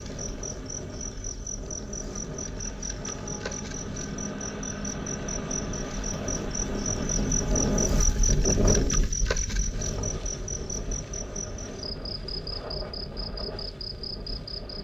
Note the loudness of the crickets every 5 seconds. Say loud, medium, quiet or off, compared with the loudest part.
medium, loud, medium.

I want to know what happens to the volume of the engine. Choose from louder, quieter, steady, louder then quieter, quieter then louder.
louder.